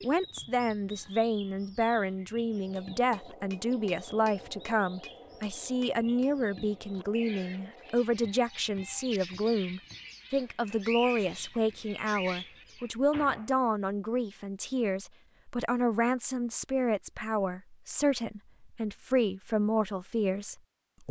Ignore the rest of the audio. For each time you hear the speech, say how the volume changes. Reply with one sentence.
The speech can be heard from 0.0 to 21.0 s, at a steady volume.